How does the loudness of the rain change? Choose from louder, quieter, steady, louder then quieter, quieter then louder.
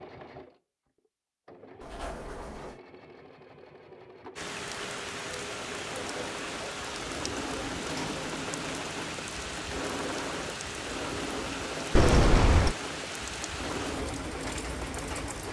steady.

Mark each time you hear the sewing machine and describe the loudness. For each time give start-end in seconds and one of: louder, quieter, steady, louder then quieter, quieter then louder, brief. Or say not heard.
0.0-15.4 louder.